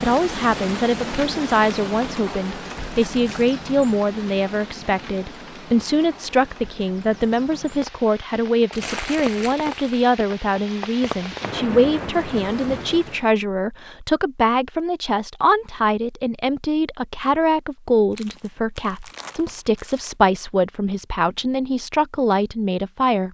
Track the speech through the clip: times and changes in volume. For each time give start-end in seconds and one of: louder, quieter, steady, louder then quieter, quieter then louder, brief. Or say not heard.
0.0-23.2 steady.